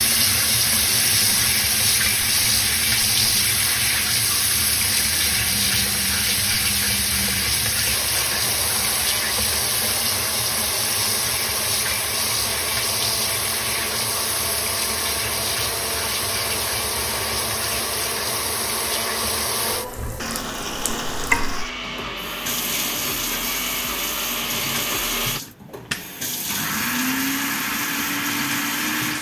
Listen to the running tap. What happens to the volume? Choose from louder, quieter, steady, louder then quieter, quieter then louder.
quieter.